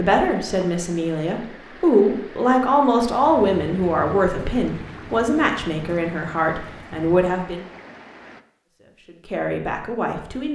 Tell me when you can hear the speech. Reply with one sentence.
You can hear the speech from 0.0 to 7.7 s and from 8.8 to 10.5 s.